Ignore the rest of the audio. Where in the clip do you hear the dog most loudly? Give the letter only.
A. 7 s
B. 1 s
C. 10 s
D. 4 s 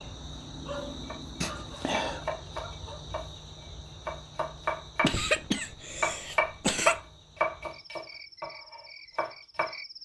B.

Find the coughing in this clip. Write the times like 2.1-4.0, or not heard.
1.4-2.2, 5.0-7.0.